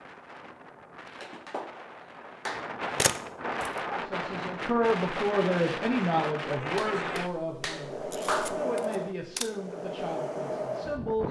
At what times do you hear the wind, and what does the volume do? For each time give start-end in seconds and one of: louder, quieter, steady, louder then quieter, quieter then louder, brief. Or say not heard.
0.0-11.2 louder.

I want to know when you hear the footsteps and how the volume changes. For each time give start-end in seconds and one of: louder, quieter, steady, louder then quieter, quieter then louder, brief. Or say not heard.
not heard.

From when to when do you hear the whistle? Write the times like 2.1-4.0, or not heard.
not heard.